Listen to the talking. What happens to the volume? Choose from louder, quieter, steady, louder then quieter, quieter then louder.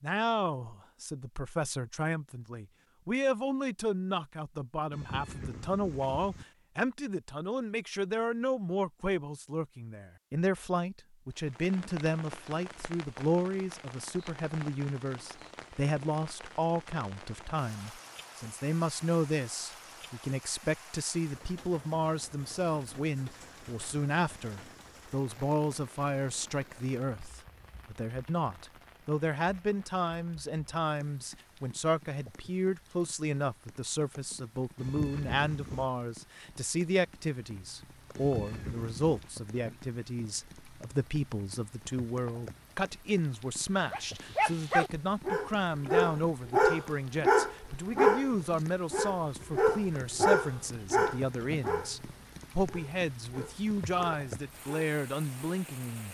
steady.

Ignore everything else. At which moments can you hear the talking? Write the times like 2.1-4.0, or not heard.
0.0-56.1.